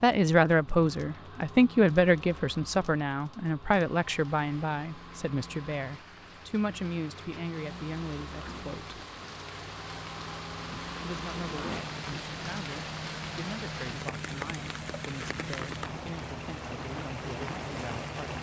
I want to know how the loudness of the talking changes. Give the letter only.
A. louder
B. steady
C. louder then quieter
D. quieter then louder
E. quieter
E.